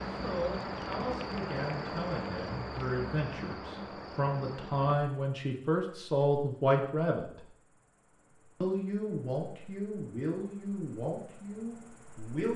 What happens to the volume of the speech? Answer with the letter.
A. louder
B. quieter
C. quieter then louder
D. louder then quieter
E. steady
D.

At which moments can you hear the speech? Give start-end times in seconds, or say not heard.
0.1-7.4, 8.6-12.5.